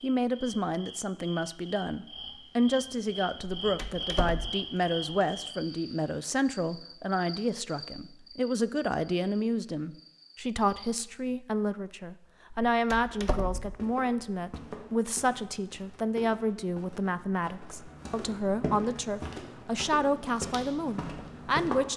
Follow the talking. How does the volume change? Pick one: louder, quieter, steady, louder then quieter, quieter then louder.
steady.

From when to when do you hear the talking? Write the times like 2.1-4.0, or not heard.
0.0-21.9.